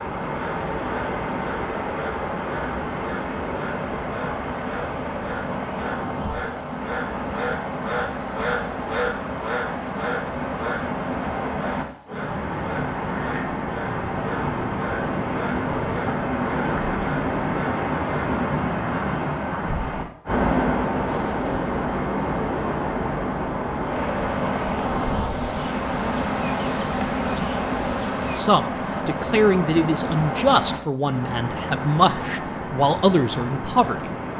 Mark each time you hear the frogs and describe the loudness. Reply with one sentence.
The frogs can be heard from 0.0 to 18.3 s, getting louder then quieter.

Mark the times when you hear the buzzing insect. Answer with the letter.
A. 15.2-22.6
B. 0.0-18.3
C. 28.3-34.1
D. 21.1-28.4
D.